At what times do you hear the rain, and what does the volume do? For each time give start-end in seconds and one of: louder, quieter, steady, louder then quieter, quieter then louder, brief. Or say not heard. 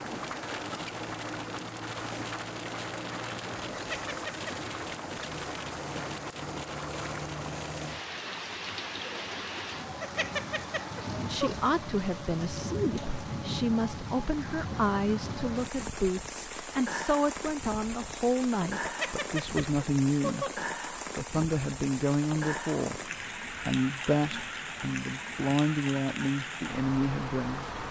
0.0-27.8 steady.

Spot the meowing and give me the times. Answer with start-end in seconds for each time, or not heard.
3.7-4.5, 10.0-11.6, 18.8-20.6.